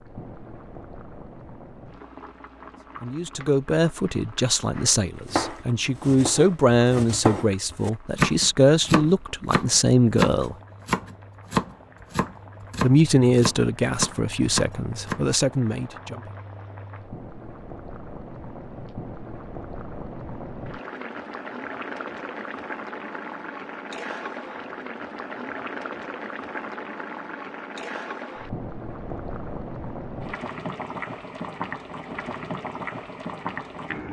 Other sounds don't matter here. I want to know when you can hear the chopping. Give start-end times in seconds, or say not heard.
4.8-15.2.